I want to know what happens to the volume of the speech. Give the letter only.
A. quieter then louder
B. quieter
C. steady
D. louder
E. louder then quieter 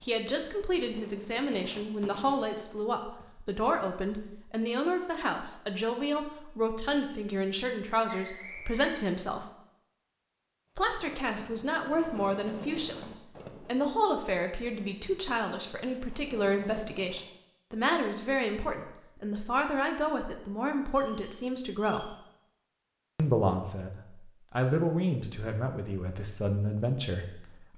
C.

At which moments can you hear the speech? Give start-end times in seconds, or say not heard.
0.0-9.5, 10.8-22.1, 23.1-27.7.